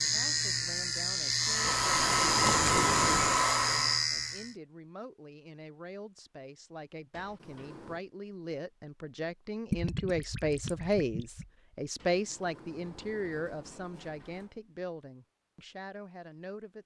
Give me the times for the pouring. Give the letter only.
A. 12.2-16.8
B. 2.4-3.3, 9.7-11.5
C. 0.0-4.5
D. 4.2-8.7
B.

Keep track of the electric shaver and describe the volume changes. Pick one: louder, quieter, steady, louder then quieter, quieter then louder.
steady.